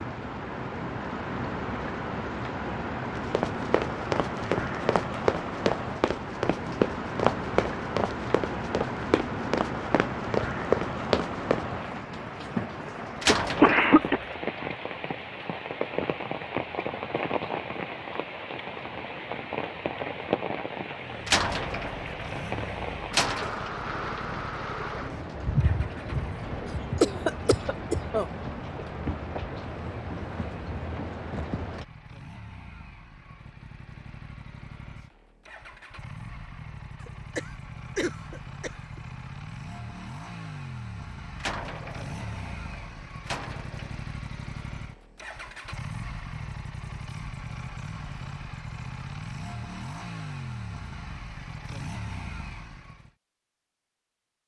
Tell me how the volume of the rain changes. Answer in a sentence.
The volume of the rain stays about the same.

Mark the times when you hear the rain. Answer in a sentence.
You can hear the rain from 0.0 to 31.9 s.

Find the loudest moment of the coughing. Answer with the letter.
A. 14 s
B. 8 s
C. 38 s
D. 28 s
A.